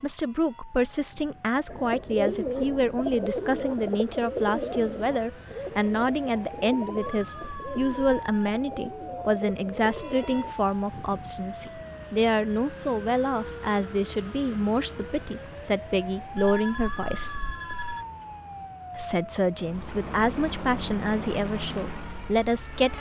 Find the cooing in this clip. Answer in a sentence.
You can hear the cooing from 1.6 to 10.6 s.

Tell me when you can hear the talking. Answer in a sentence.
You can hear the talking from 0.0 to 17.4 s and from 18.9 to 22.9 s.